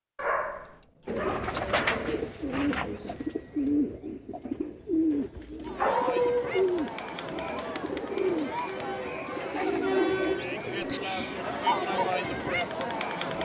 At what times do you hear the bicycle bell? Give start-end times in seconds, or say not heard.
3.1-3.6, 10.8-11.3.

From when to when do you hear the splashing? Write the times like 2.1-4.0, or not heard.
not heard.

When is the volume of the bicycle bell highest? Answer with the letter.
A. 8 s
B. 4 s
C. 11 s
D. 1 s
C.